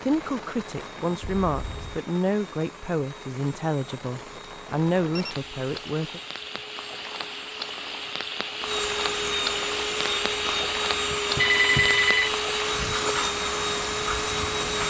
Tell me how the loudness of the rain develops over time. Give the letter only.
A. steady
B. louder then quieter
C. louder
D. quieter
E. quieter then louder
C.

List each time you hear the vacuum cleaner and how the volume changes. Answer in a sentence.
The vacuum cleaner can be heard from 0.0 to 14.8 s, getting louder.